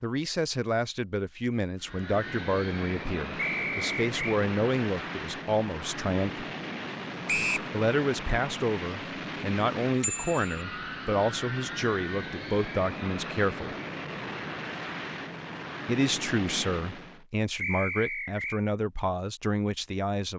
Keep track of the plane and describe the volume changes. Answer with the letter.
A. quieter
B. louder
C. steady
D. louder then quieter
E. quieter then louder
C.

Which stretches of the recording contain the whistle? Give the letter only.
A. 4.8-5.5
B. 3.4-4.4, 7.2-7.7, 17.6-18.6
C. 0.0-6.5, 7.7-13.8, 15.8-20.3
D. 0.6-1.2
B.